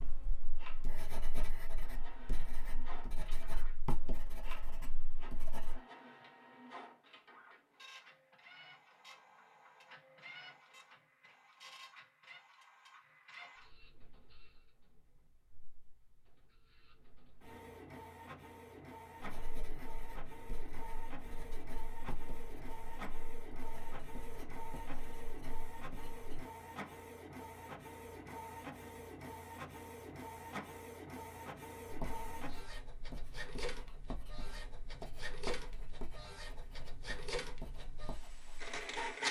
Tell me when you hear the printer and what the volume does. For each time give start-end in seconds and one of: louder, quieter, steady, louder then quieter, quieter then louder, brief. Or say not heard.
0.0-39.2 louder.